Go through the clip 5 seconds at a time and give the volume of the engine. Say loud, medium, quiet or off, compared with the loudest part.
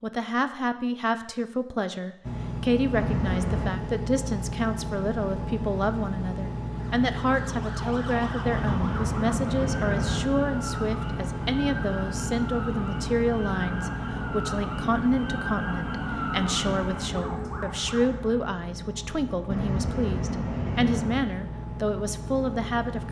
loud, loud, loud, medium, loud.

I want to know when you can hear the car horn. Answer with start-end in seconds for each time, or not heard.
2.9-3.8, 8.4-10.2, 19.5-21.2.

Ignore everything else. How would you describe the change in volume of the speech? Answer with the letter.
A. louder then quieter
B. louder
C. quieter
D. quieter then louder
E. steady
E.